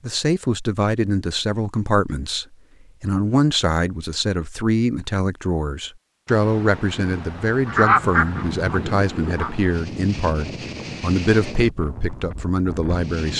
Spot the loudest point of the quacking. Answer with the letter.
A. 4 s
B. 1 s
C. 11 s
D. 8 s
D.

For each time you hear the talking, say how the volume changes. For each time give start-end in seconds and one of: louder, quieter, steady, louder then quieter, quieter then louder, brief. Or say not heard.
0.0-13.3 steady.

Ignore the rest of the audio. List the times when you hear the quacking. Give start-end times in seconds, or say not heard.
7.7-9.5.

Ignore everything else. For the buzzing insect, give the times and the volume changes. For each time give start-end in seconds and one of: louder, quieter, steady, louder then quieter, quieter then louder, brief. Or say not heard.
not heard.